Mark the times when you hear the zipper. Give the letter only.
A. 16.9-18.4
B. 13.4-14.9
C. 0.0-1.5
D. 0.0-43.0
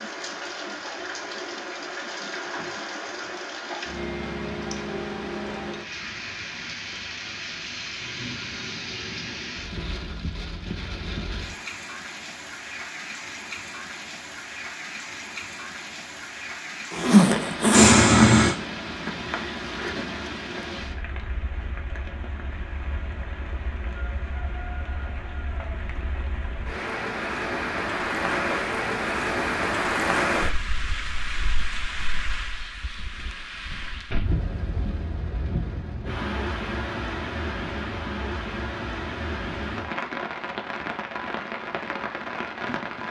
A.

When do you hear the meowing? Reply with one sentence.
The meowing can be heard from 17.7 to 18.6 s.